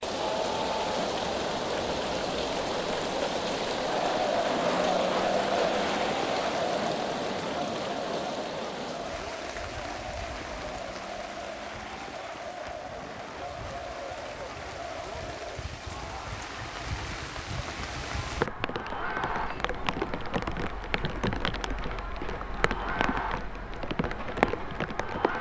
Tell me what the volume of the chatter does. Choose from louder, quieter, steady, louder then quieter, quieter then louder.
quieter.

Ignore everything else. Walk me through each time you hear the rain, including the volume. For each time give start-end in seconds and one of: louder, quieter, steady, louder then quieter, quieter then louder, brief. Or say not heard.
0.0-25.3 quieter then louder.